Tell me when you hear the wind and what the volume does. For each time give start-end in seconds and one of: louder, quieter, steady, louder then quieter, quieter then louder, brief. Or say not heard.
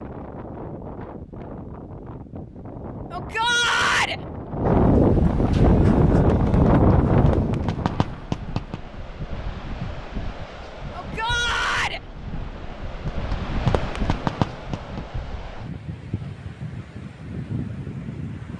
0.0-18.5 louder then quieter.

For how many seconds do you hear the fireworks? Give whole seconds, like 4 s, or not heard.
5 s.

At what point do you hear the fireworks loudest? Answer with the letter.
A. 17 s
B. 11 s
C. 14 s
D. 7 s
C.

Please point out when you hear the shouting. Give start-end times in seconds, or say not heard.
3.1-4.2, 10.9-12.0.